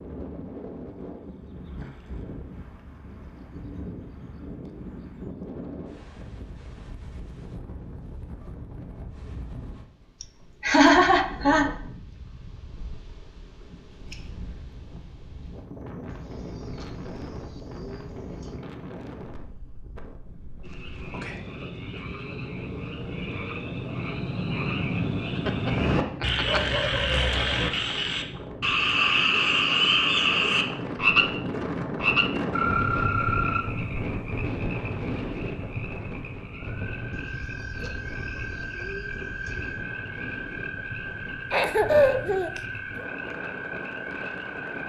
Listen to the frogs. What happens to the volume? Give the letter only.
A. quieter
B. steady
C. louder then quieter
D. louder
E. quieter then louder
C.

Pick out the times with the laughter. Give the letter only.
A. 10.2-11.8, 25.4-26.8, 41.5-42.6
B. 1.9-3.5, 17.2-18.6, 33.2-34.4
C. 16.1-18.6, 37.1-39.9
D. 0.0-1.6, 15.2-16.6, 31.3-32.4
A.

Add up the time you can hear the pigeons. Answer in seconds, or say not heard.
5 s.